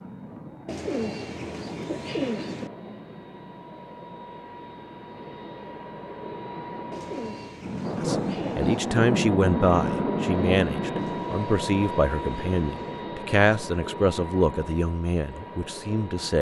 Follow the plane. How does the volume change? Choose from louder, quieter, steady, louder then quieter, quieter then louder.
louder then quieter.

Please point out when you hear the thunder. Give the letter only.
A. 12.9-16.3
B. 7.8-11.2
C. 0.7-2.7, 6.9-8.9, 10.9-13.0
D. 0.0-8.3
B.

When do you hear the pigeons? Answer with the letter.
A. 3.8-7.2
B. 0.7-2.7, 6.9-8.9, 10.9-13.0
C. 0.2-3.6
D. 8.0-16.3
B.